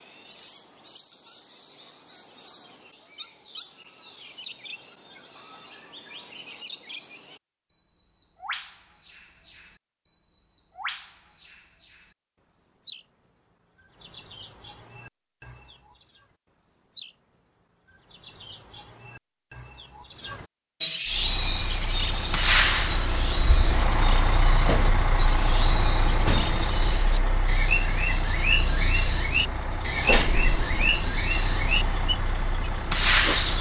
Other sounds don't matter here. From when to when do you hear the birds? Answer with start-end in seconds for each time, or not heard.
0.0-33.5.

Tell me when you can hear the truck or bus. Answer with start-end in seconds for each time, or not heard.
21.1-33.5.